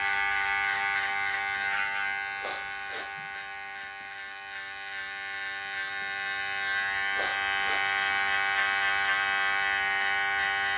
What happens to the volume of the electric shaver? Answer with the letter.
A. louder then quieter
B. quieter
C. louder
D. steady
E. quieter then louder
E.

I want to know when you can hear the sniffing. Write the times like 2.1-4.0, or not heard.
2.4-3.1, 7.2-7.8.